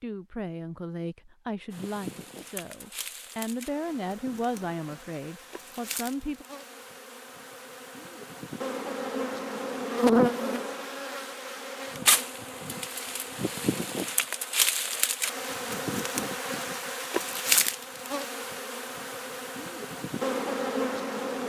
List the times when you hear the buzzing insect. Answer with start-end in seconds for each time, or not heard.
1.7-21.4.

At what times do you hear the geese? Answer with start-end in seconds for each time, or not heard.
not heard.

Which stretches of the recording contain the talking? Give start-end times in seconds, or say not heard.
0.0-6.5.